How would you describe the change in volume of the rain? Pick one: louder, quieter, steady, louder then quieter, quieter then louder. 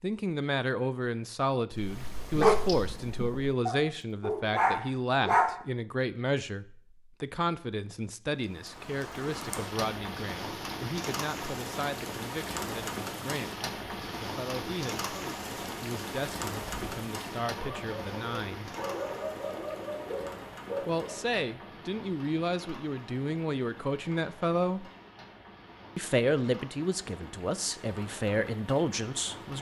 quieter.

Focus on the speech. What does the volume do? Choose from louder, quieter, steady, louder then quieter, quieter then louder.
quieter then louder.